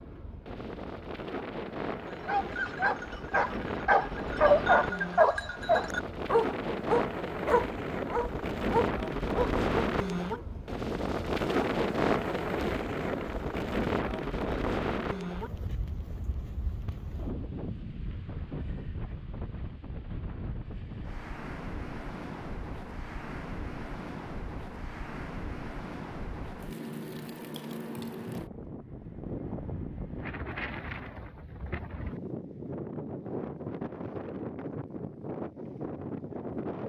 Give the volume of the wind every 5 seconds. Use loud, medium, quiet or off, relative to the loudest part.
medium, loud, loud, medium, medium, medium, medium, medium.